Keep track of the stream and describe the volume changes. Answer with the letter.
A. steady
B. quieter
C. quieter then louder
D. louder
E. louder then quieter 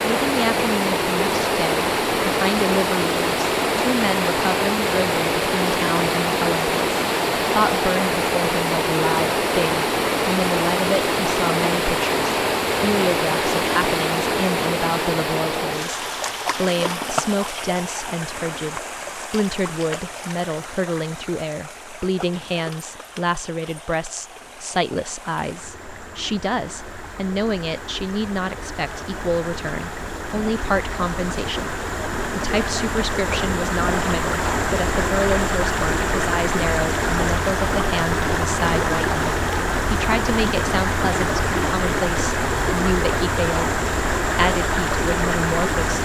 C.